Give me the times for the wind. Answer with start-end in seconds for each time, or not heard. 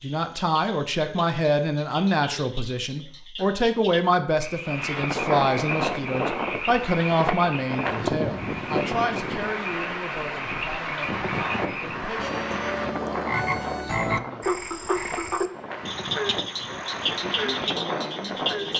4.7-18.7.